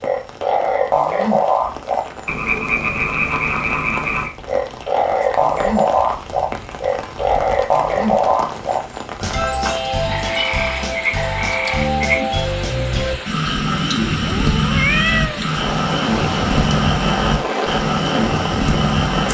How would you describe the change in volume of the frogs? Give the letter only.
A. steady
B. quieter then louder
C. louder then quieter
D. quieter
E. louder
A.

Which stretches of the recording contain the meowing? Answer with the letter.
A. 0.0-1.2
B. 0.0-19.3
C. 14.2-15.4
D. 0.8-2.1
C.